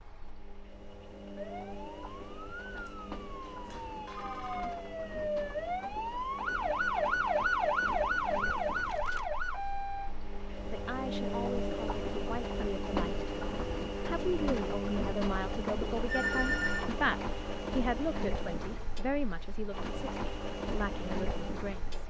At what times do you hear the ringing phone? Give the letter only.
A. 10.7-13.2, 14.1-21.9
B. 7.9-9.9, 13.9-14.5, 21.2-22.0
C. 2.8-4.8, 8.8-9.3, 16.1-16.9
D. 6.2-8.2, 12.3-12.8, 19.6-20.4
C.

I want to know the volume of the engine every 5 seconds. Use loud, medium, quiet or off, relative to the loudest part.
medium, medium, loud, loud, loud.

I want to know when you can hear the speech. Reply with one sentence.
The speech can be heard from 10.7 to 13.2 s and from 14.1 to 21.9 s.